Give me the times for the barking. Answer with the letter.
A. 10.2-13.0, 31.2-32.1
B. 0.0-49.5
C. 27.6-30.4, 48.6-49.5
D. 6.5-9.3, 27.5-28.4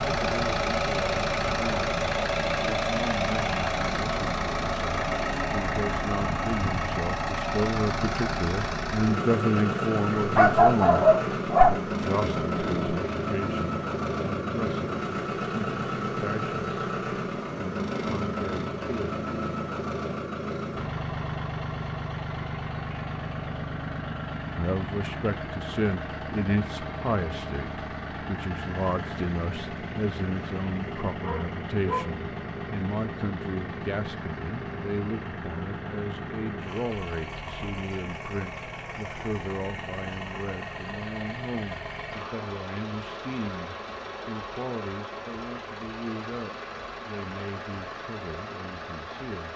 A.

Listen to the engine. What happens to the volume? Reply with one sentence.
The volume of the engine goes down.